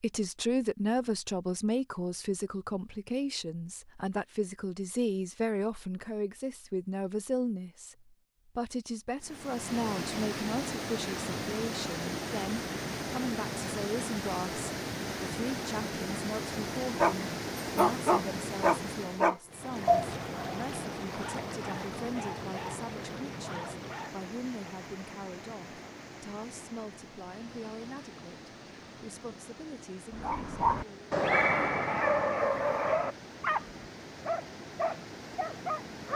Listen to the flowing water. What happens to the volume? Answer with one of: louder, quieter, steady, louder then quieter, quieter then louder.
quieter.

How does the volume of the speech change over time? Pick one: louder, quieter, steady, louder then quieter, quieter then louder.
quieter.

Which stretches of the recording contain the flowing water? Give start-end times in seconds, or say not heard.
9.2-36.1.